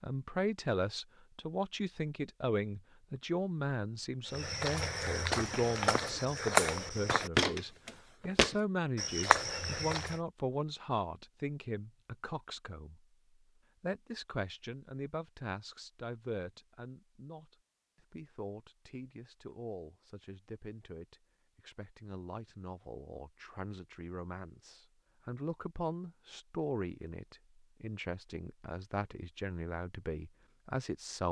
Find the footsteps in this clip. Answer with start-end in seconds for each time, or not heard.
4.3-10.2.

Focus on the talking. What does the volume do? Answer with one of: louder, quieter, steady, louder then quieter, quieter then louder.
quieter then louder.